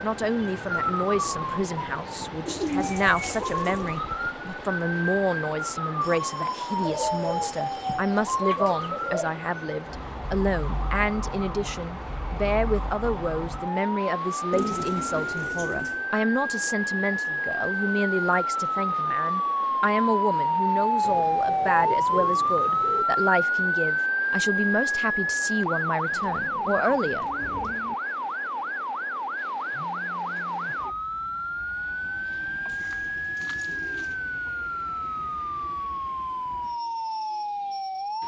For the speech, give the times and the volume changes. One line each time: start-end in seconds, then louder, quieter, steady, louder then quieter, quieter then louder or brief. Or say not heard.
0.0-27.2 steady.